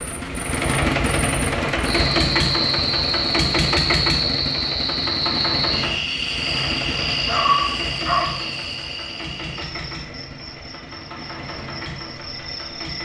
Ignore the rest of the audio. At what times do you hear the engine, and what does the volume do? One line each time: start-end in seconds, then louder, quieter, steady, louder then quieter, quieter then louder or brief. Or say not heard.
0.0-13.0 quieter.